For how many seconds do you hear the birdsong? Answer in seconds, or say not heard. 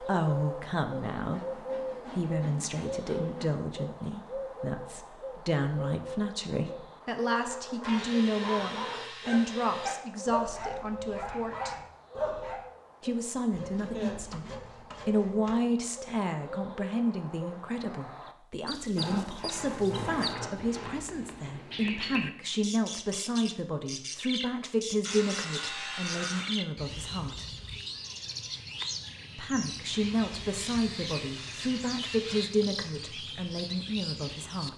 35 s.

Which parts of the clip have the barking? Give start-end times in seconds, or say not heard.
7.3-12.7.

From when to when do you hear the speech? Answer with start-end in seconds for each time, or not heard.
0.0-11.8, 13.0-27.4, 29.4-34.7.